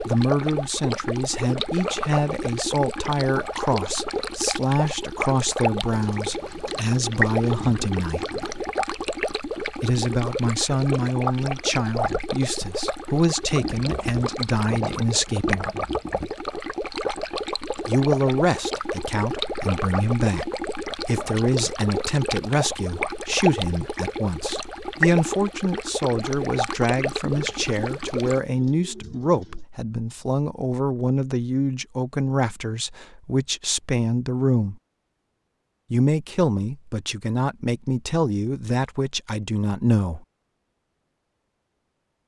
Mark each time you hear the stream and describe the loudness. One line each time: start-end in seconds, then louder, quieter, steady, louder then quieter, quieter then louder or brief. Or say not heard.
0.0-28.4 steady.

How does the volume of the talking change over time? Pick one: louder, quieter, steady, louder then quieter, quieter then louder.
steady.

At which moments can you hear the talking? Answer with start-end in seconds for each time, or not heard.
0.1-8.2, 9.8-15.7, 17.9-34.8, 35.9-40.2.